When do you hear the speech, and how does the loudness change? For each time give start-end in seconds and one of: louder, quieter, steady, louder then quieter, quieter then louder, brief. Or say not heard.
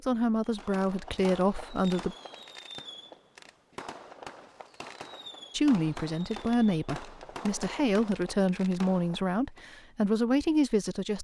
0.0-2.1 brief
5.5-11.1 quieter then louder.